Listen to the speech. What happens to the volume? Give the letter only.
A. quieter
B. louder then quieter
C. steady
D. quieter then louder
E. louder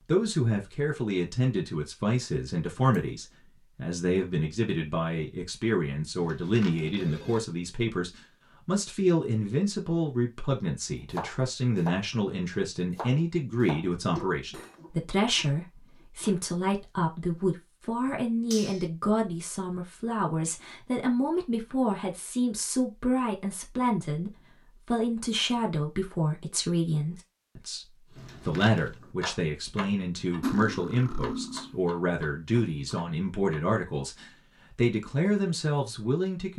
C.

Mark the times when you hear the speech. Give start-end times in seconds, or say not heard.
0.1-36.5.